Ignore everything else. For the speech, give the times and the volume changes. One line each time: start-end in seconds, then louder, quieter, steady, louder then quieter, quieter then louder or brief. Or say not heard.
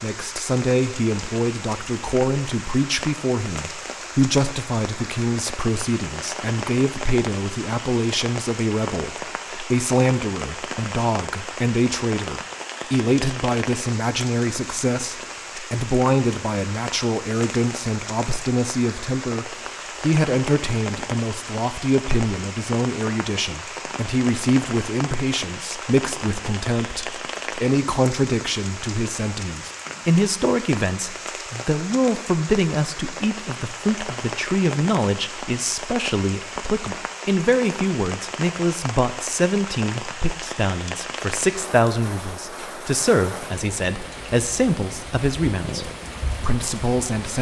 0.0-47.3 steady.